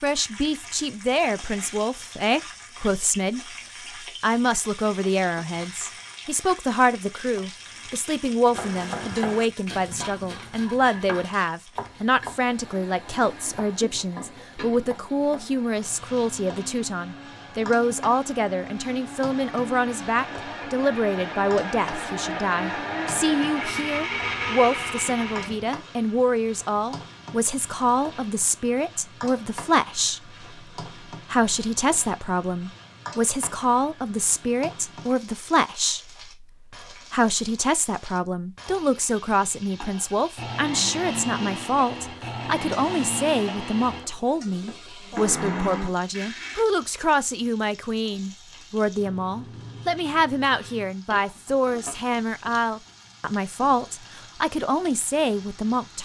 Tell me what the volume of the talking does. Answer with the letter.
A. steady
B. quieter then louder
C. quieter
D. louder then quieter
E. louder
A.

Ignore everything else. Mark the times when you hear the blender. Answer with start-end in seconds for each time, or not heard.
12.4-25.7, 40.4-46.6.